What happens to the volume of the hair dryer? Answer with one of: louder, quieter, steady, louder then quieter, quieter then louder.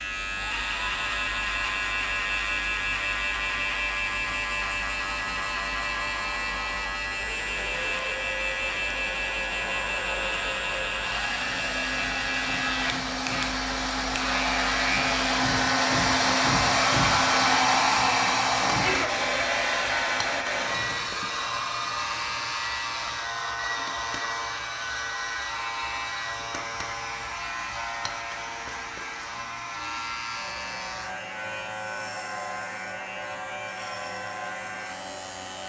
louder then quieter.